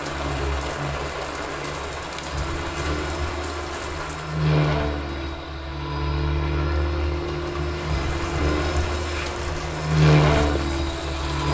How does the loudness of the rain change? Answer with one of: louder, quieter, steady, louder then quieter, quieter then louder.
quieter then louder.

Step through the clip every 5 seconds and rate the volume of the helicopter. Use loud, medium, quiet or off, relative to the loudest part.
medium, medium, loud.